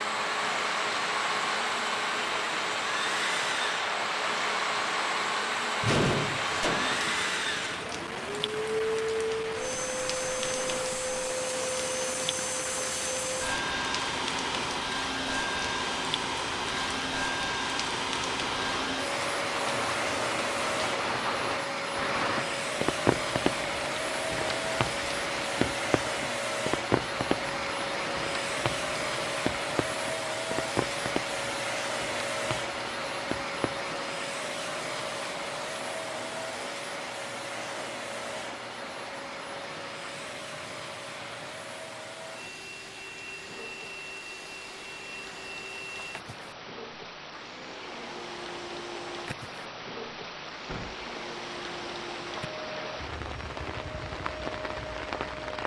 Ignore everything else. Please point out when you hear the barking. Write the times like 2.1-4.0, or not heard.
not heard.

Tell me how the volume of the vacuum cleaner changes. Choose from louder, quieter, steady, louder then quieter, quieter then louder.
quieter.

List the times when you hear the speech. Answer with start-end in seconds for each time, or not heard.
not heard.